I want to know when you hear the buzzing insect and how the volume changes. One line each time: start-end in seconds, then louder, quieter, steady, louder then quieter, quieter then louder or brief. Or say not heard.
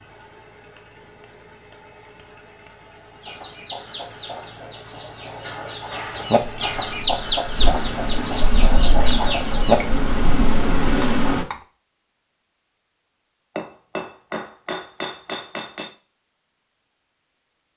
6.4-11.4 louder.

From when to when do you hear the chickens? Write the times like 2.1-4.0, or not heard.
3.2-9.8.